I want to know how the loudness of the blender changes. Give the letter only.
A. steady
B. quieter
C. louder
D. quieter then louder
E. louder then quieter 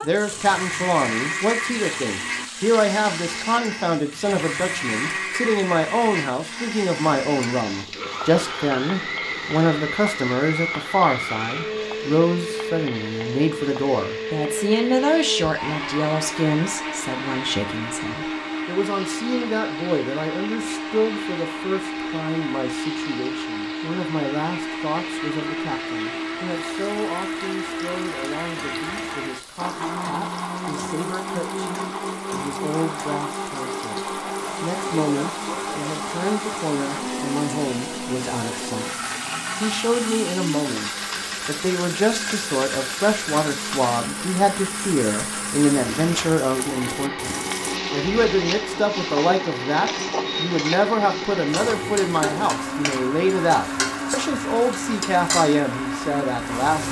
A.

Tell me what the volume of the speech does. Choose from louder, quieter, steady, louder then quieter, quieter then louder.
quieter then louder.